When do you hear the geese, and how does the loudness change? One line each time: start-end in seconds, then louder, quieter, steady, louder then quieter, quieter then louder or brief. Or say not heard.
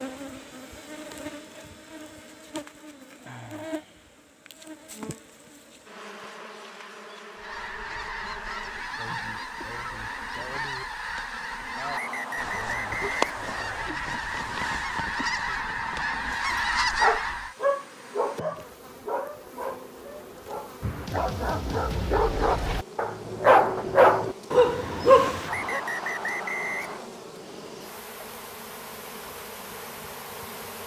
7.3-17.6 louder.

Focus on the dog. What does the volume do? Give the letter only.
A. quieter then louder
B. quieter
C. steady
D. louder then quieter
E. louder
A.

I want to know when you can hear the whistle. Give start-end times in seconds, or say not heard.
11.9-13.8, 25.4-27.1.